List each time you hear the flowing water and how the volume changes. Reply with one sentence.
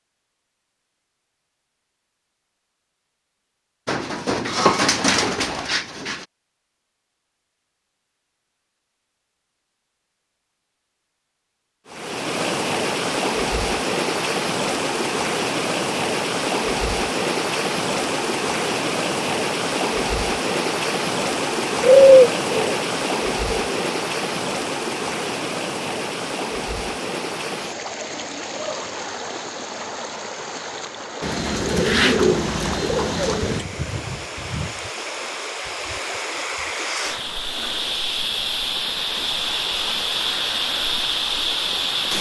You can hear the flowing water from 11.8 to 42.1 s, getting quieter then louder.